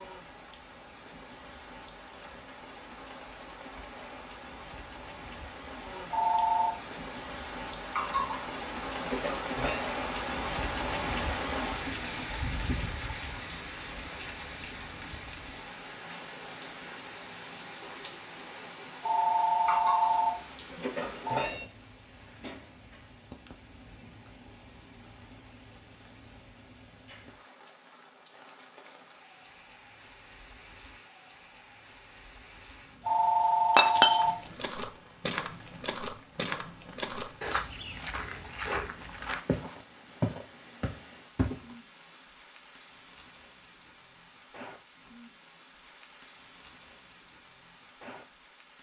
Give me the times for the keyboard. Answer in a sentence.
The keyboard can't be heard in this clip.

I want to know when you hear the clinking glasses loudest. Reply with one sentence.
The loudest moment of the clinking glasses is at 34 seconds.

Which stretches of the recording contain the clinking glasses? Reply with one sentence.
You can hear the clinking glasses from 8.0 to 9.8 s, from 19.6 to 21.6 s and from 33.8 to 34.2 s.